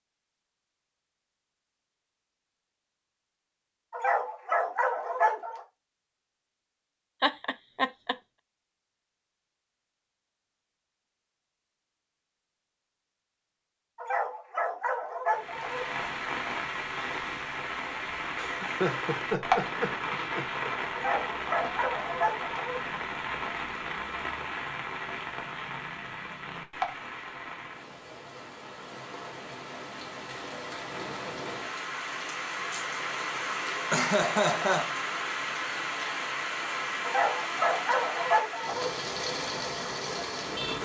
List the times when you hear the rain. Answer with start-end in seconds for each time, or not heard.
15.3-40.8.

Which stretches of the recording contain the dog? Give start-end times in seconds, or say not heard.
3.9-5.6, 13.9-15.9, 20.9-22.8, 37.0-38.9.